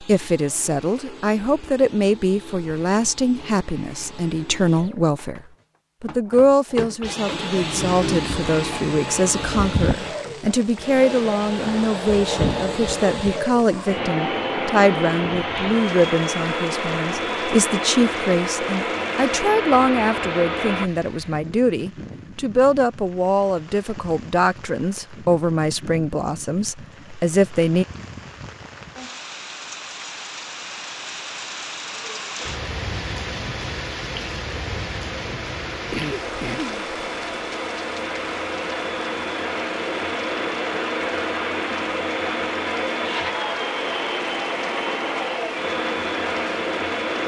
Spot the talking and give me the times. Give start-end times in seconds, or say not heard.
0.0-5.4, 6.0-27.9.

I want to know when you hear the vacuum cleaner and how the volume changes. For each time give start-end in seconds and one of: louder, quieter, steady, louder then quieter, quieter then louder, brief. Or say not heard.
0.0-20.9 louder
32.4-47.2 louder.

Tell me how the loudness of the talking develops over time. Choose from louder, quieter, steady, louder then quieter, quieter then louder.
steady.